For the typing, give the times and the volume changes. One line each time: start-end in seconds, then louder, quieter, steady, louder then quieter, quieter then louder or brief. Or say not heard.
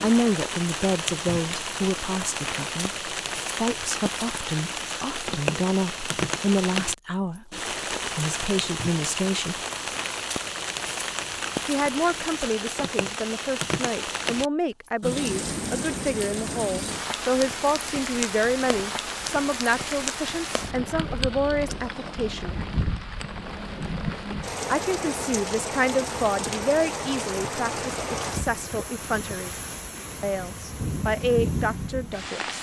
not heard.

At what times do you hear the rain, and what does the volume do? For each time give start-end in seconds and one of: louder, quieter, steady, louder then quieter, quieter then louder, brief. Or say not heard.
0.0-32.5 steady.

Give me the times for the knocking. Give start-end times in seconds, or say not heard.
not heard.